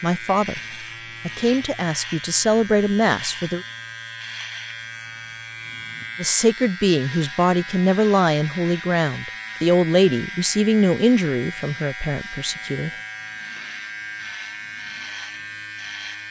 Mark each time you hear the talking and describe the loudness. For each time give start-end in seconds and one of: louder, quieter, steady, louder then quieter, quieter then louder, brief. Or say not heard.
0.0-0.6 brief
1.2-3.6 brief
6.2-12.9 quieter.